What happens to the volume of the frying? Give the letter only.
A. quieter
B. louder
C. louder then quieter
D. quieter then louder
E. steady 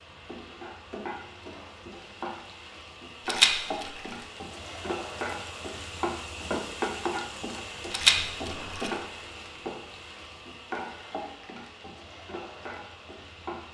C.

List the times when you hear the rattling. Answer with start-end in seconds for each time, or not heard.
3.2-3.9, 7.9-8.9.